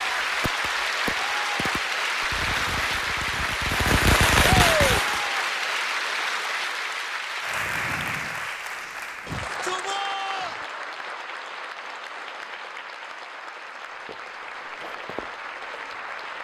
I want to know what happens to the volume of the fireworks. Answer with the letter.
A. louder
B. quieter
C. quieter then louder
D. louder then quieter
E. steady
C.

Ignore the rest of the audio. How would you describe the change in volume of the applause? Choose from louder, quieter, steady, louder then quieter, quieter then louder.
quieter.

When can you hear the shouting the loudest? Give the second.
5 s.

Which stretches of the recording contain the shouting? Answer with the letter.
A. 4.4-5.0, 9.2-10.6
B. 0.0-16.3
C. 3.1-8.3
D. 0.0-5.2
A.